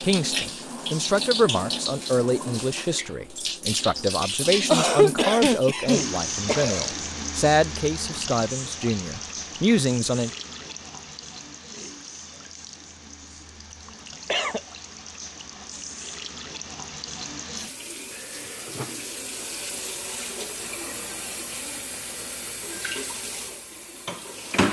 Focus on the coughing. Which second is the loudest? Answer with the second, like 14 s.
5 s.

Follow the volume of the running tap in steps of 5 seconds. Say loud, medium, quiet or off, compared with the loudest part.
loud, loud, medium, medium, loud.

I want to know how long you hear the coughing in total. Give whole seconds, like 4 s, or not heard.
3 s.